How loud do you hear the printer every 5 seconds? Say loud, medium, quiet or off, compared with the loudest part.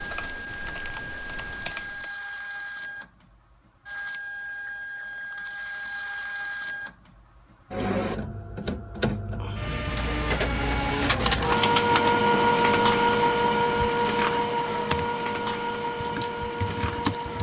quiet, medium, loud, medium.